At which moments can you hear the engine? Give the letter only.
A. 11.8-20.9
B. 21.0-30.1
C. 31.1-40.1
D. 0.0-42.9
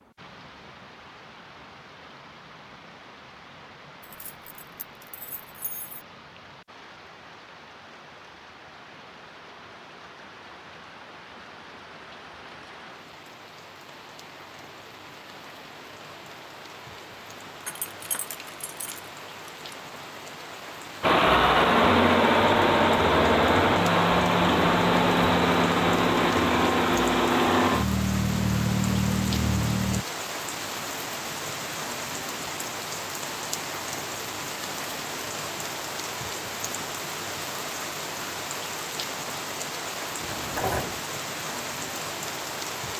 B.